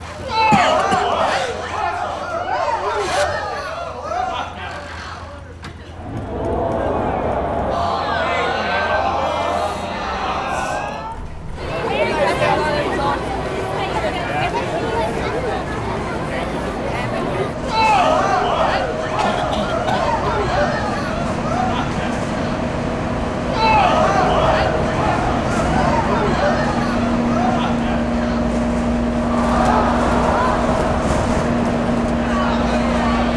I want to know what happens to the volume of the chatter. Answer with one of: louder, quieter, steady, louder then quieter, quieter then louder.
steady.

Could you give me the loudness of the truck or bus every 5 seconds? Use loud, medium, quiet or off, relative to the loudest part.
quiet, quiet, quiet, medium, loud, loud, loud.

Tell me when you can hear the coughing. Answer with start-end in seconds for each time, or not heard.
0.5-1.6, 19.1-20.2.